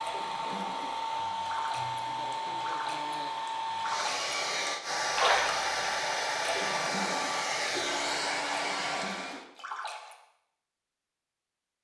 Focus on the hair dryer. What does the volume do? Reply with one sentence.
The loudness of the hair dryer stays about the same.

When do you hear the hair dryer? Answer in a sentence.
The hair dryer can be heard from 0.0 to 9.4 s.